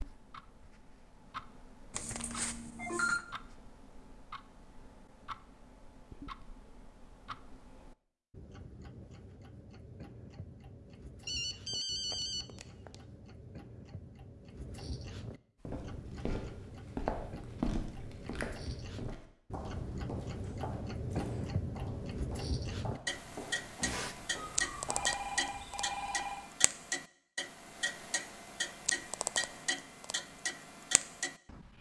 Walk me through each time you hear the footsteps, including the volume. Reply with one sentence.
You can hear the footsteps from 15.7 to 25.1 s, getting quieter.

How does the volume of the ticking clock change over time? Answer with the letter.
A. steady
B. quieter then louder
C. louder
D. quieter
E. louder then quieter
C.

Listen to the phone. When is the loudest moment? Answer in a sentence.
The volume of the phone peaks at 3 seconds.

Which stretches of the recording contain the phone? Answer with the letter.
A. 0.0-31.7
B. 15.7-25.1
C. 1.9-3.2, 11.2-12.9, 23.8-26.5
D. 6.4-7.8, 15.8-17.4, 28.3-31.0
C.